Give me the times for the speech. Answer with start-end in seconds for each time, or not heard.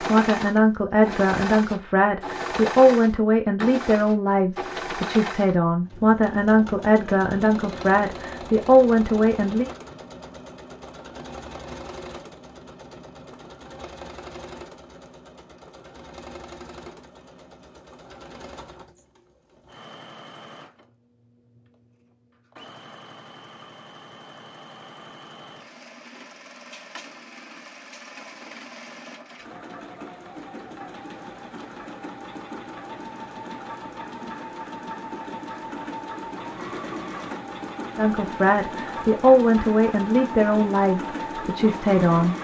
0.0-9.7, 38.0-42.3.